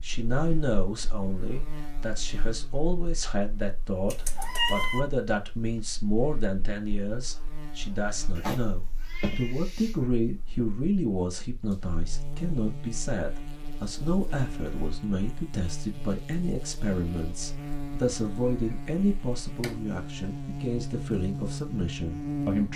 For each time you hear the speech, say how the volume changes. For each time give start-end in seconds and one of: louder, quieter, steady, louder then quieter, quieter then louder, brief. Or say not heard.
0.0-22.7 steady.